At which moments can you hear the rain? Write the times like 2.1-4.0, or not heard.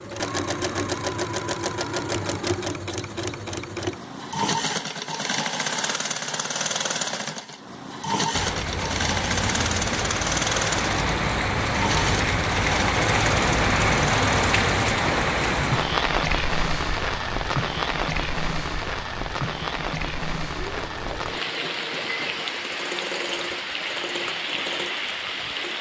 8.3-25.7.